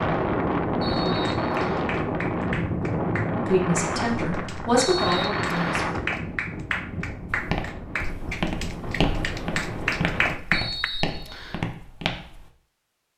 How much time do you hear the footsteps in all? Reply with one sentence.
You can hear the footsteps for 5 seconds altogether.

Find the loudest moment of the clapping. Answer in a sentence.
The volume of the clapping peaks at 10 seconds.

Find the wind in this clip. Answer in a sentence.
You can hear the wind from 0.0 to 10.4 s.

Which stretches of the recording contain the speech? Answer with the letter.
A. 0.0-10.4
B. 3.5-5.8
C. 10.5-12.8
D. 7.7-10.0
B.